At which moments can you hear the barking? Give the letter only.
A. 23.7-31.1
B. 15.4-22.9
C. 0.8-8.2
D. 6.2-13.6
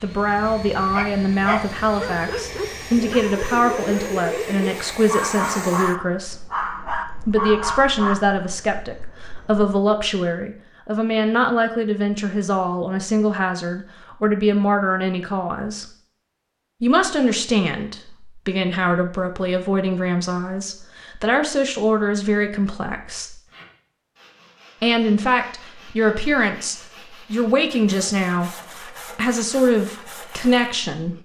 C.